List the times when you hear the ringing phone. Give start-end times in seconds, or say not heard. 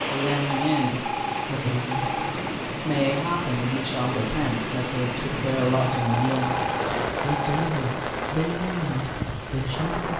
0.5-2.5, 5.8-7.5.